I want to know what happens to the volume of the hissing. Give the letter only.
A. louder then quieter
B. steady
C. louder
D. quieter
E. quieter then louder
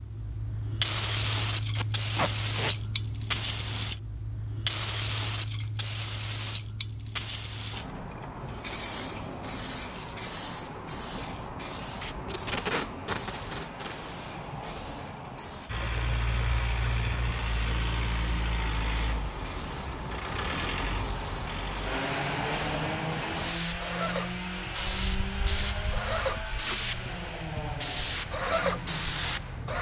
E.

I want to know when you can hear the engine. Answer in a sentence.
The engine can be heard from 15.7 to 29.7 s.